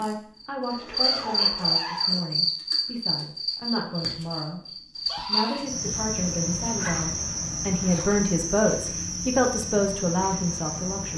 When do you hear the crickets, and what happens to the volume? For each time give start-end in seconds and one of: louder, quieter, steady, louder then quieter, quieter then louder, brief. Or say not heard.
0.0-11.1 quieter.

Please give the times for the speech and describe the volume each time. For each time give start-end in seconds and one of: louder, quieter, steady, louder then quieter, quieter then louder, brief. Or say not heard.
0.0-11.1 louder.